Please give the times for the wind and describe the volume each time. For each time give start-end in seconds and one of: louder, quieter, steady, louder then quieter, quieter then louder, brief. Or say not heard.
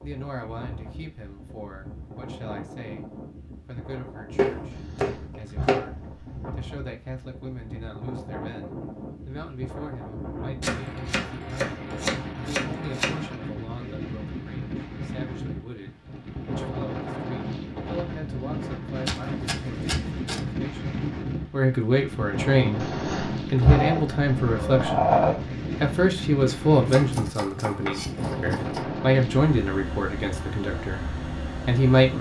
0.0-32.1 louder.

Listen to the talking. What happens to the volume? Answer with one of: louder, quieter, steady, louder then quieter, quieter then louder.
louder.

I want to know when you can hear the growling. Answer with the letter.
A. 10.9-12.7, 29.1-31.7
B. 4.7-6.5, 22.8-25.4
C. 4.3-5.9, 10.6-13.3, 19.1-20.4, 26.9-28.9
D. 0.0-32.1
B.